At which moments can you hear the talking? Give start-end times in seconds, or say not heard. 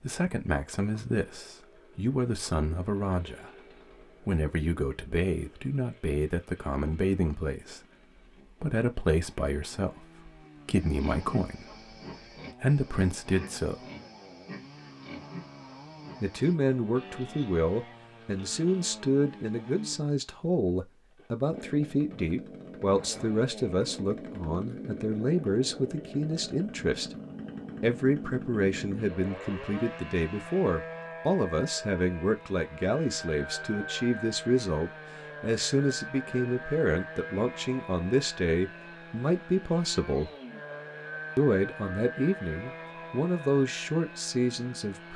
0.0-7.8, 8.5-11.8, 12.6-13.8, 16.2-27.1, 27.8-40.3, 41.4-45.1.